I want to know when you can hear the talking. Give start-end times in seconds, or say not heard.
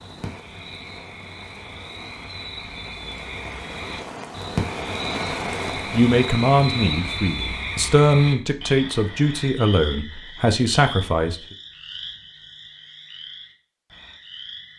5.9-11.3.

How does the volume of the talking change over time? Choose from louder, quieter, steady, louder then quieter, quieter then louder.
steady.